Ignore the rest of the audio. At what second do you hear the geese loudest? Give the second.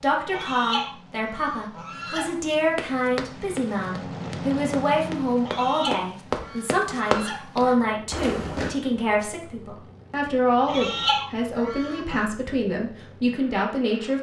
11 s.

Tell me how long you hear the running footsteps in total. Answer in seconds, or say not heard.
6 s.